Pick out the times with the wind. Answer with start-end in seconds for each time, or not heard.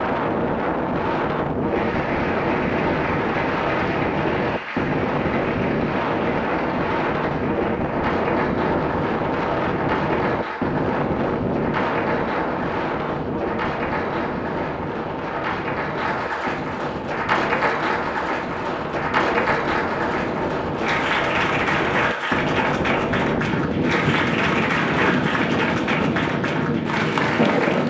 0.0-27.8.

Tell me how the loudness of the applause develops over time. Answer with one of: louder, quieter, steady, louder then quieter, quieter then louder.
louder.